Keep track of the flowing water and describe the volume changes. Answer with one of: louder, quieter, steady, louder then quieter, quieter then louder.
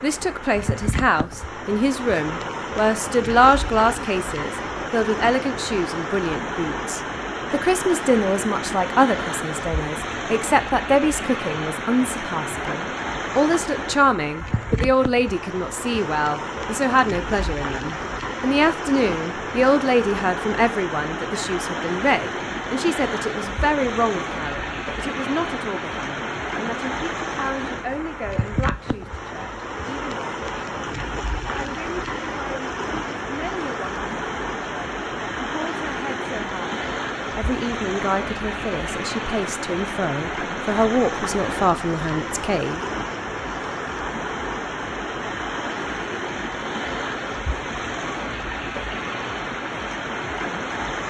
steady.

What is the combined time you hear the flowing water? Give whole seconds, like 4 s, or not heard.
51 s.